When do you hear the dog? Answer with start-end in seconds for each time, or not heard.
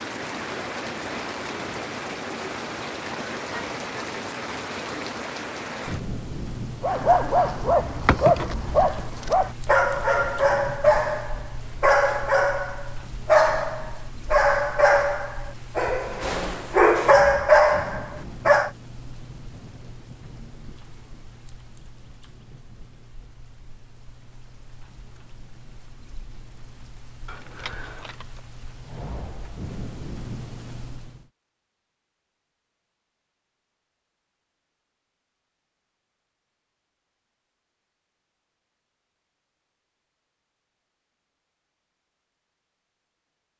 6.8-18.7.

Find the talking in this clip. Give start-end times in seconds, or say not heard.
not heard.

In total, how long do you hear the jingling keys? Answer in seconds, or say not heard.
2 s.